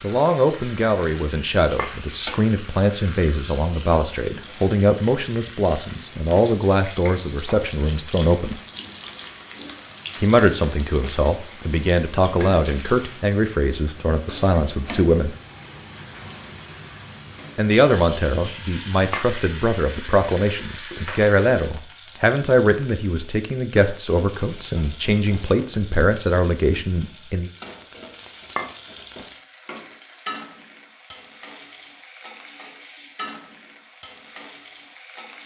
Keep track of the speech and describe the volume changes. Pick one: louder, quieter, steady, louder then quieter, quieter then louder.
steady.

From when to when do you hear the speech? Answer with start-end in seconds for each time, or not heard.
0.0-8.6, 10.2-15.3, 17.6-27.5.